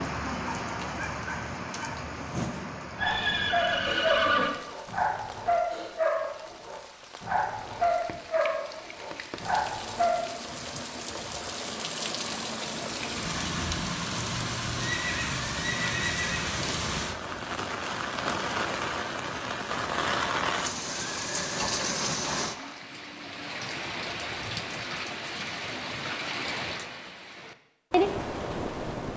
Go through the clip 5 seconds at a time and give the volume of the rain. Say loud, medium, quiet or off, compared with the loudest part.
medium, quiet, loud, loud, loud, loud.